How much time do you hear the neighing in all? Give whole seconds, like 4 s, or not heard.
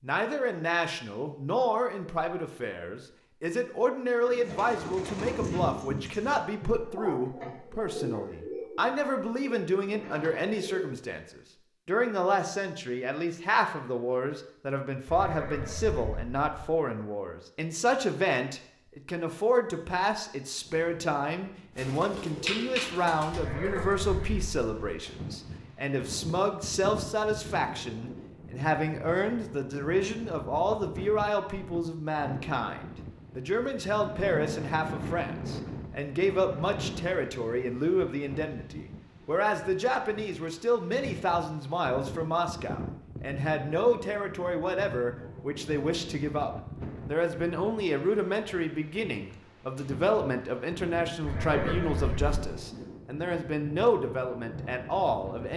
4 s.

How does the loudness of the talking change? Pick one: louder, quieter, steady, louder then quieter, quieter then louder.
steady.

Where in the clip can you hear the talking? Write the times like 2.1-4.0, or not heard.
0.0-55.5.